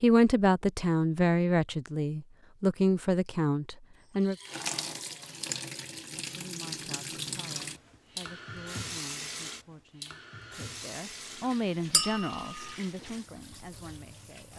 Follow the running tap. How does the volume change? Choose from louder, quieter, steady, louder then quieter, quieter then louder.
quieter.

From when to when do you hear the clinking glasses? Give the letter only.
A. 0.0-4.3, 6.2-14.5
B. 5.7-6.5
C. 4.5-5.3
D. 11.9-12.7
D.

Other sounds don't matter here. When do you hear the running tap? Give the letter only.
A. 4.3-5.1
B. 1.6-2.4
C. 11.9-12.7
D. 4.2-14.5
D.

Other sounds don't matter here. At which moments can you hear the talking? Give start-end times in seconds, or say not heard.
0.0-4.3, 6.2-14.5.